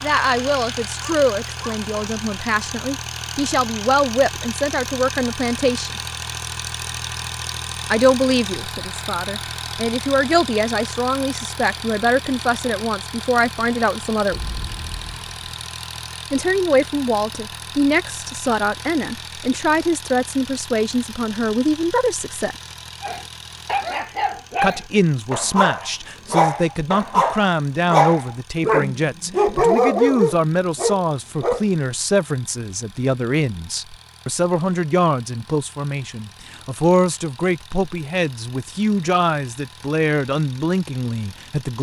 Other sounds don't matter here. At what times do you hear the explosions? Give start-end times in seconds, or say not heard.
14.3-15.6.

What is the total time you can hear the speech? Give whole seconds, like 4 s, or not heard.
36 s.